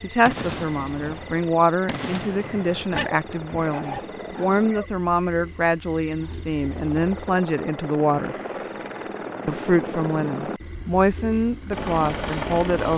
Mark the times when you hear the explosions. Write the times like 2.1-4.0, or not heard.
0.2-2.9.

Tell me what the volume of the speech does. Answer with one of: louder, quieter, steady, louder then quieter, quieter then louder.
steady.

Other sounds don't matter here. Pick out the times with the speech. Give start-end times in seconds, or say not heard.
0.0-8.3, 9.4-12.9.